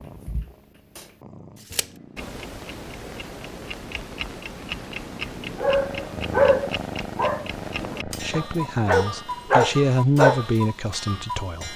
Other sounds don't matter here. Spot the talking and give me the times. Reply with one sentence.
You can hear the talking from 8.1 to 11.7 s.